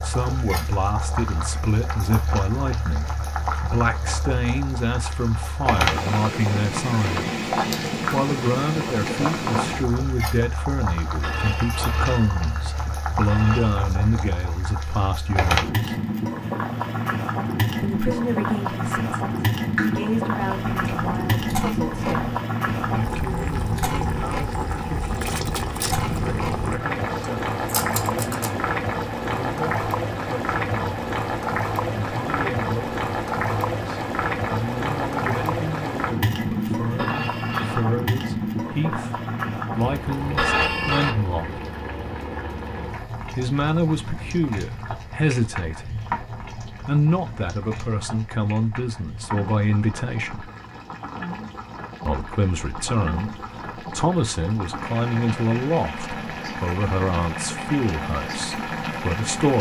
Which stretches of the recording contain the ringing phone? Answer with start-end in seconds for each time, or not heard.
11.2-13.8, 37.0-37.9, 40.4-41.1.